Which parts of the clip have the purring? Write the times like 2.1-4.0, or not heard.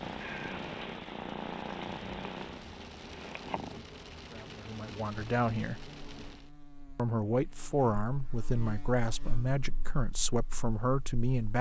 0.0-3.8.